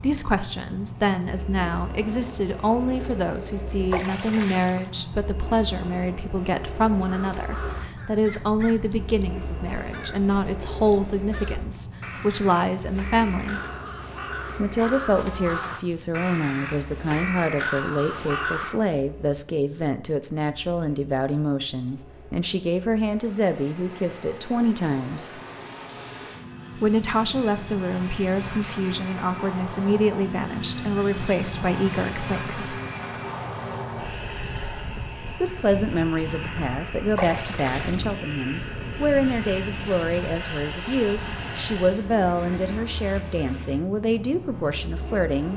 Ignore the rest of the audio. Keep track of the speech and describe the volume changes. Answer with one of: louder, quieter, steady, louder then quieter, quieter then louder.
steady.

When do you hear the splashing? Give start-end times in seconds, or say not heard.
3.9-4.9, 37.1-38.1.